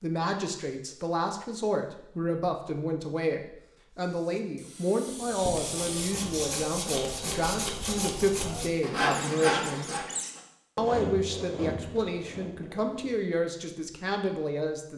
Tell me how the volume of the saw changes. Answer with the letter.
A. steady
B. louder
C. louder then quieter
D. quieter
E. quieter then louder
C.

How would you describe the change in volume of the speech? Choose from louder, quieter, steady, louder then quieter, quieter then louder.
steady.